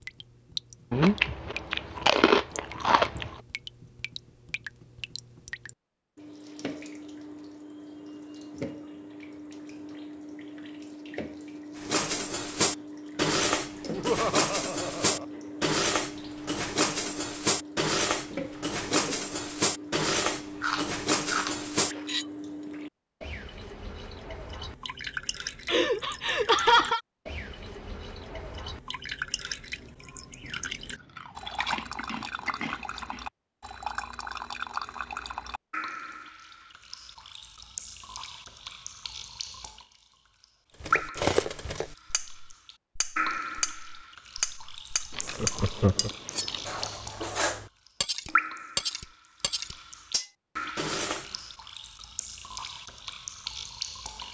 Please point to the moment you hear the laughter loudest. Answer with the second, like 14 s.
27 s.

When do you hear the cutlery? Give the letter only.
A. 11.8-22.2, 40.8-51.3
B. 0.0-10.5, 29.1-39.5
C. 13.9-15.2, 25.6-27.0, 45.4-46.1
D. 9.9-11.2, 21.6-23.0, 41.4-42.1
A.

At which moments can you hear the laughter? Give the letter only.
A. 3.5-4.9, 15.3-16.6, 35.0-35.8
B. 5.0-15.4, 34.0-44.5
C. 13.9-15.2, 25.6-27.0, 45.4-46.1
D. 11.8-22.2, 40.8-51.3
C.